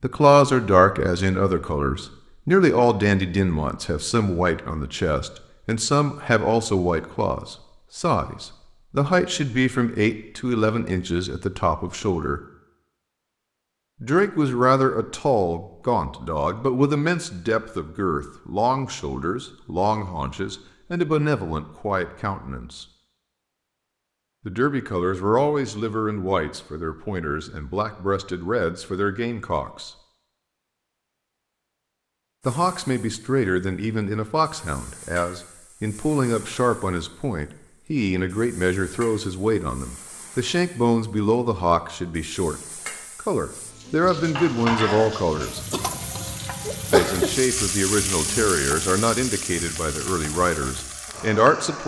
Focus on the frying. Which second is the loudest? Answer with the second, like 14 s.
47 s.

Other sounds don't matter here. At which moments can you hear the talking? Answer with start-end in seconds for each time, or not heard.
0.0-12.4, 14.0-22.9, 24.4-29.9, 32.5-45.6, 46.9-51.8.